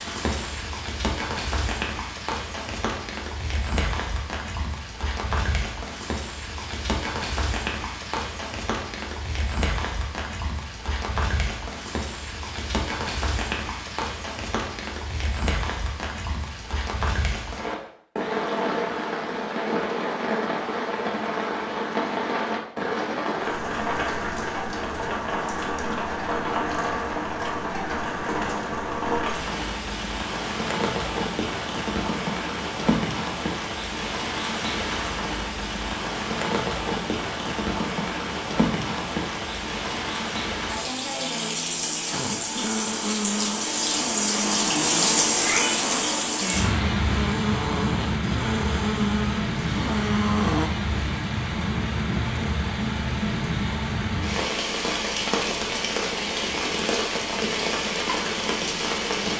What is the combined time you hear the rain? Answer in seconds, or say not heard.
59 s.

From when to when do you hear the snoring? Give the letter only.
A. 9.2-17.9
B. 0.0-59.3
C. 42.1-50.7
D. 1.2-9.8
C.